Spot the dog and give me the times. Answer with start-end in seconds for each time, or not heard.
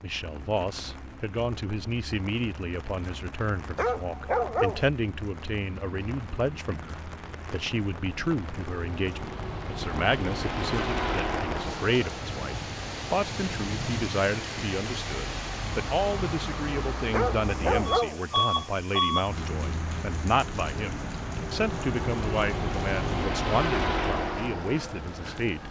3.8-4.9, 17.1-18.2.